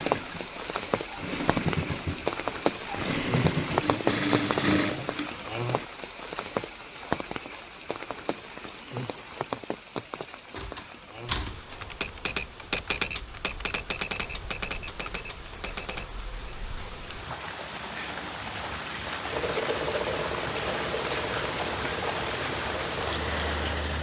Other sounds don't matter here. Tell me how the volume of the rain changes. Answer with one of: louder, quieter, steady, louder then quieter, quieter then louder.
quieter then louder.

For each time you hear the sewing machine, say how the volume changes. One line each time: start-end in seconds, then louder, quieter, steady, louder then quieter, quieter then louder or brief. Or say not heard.
0.0-5.8 louder
19.3-23.9 quieter.